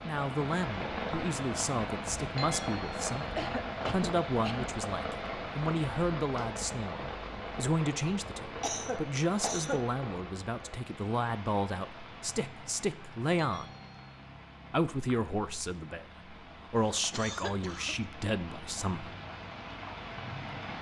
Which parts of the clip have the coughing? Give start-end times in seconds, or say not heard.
3.4-4.8, 8.6-9.8, 17.1-18.1.